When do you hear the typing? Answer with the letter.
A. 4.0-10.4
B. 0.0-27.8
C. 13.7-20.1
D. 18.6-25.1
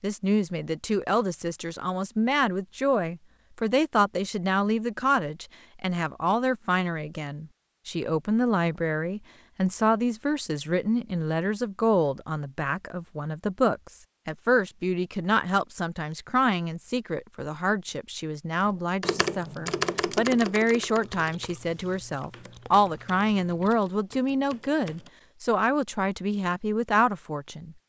D.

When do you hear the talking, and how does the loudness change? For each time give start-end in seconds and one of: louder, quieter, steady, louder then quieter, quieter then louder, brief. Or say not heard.
0.0-27.8 steady.